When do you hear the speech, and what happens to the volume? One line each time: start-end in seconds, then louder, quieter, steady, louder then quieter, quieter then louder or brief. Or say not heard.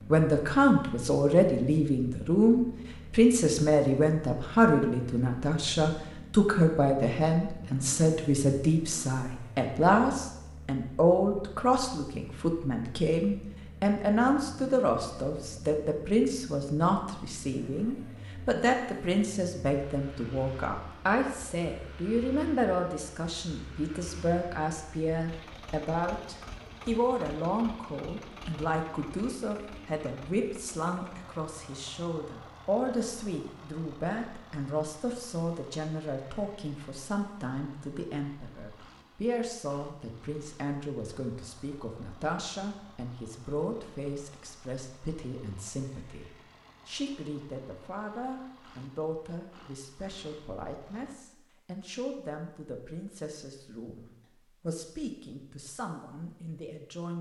0.1-57.1 quieter.